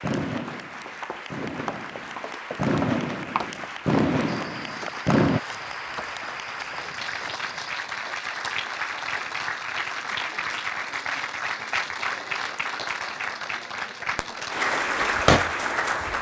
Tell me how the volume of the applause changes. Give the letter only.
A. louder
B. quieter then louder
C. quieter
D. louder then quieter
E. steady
A.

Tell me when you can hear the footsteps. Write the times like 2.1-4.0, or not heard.
0.3-7.8.